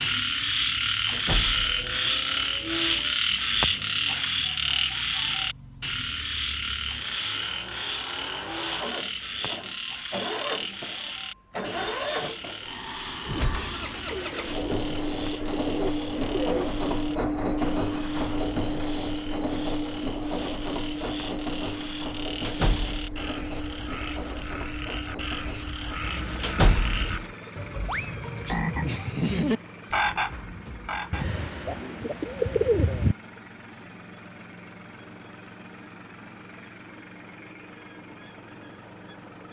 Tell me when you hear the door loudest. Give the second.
27 s.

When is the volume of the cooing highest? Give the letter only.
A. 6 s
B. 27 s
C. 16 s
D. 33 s
D.